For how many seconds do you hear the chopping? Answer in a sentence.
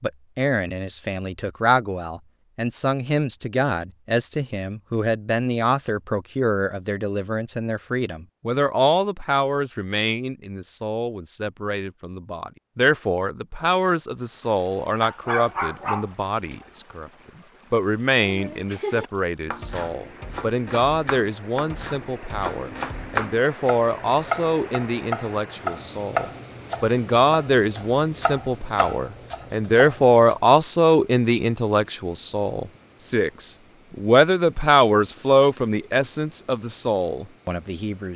You can hear the chopping for 12 seconds altogether.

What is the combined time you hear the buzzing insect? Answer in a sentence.
You can't hear the buzzing insect here.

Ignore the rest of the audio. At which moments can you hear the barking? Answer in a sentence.
You can hear the barking from 15.0 to 16.6 s.